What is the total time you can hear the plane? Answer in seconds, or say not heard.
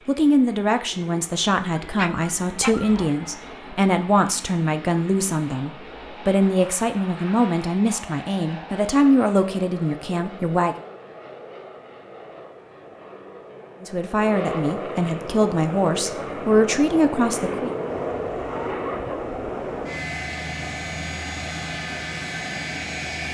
23 s.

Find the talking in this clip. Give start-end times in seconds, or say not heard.
0.1-10.8, 13.8-17.7.